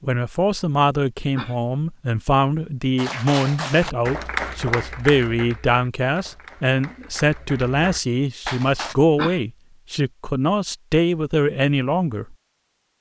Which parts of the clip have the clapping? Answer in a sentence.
The clapping can be heard from 3.0 to 8.9 s.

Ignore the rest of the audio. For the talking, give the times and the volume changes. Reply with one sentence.
The talking can be heard from 0.0 to 12.3 s, at a steady volume.